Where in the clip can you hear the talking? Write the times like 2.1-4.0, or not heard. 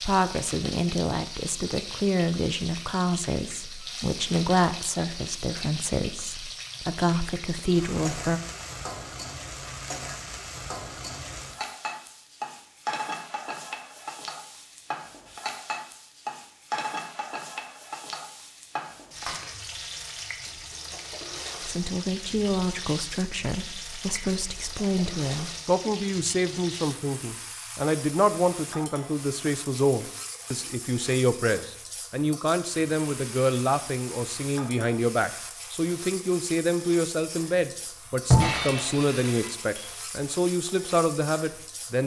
0.0-8.4, 21.6-42.0.